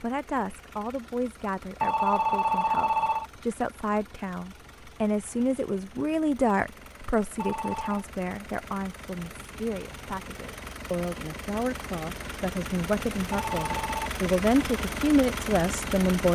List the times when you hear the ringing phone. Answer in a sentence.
You can hear the ringing phone from 1.8 to 3.2 s, from 7.3 to 8.1 s and from 13.3 to 14.1 s.